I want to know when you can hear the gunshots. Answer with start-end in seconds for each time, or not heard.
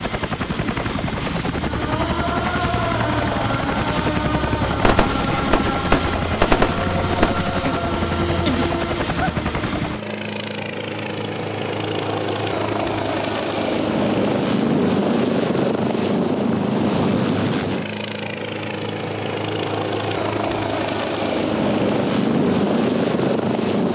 4.8-7.5.